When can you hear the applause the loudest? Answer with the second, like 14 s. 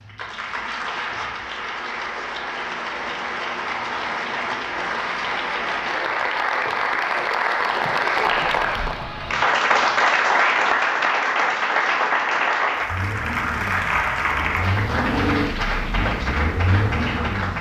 10 s.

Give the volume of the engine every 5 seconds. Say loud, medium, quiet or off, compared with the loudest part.
off, off, medium, loud.